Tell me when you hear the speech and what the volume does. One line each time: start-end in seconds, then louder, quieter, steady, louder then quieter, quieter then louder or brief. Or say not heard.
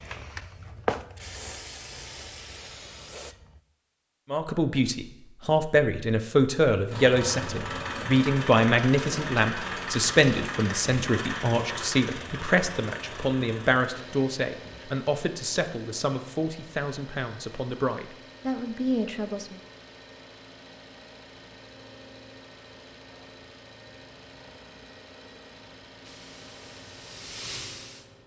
4.3-19.6 quieter.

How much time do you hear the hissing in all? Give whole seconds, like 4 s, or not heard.
6 s.